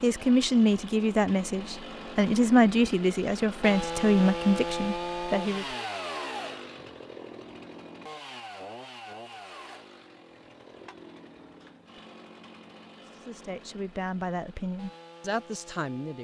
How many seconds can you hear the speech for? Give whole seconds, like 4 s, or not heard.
9 s.